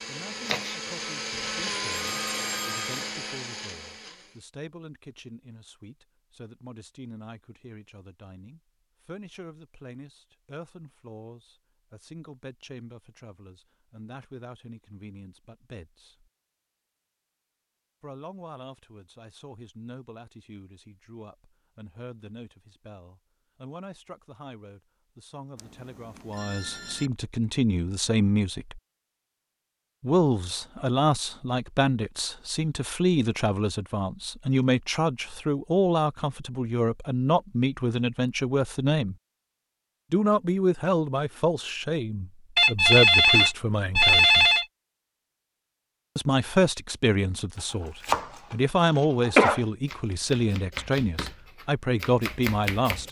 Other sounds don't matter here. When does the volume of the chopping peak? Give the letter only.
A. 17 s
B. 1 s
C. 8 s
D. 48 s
D.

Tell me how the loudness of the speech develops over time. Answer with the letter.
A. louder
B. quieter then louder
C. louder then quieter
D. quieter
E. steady
A.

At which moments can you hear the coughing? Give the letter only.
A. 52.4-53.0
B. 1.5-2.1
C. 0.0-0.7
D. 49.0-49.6
D.